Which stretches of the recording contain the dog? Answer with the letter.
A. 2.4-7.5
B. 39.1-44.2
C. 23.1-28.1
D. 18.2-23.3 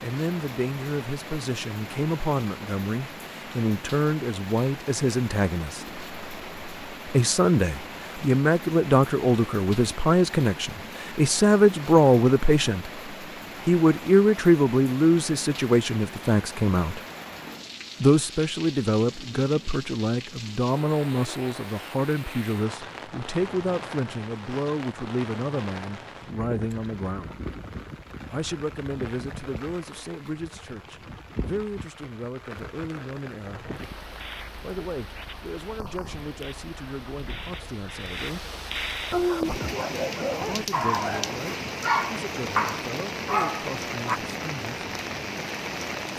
B.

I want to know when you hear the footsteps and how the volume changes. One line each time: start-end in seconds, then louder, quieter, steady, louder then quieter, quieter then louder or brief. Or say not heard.
not heard.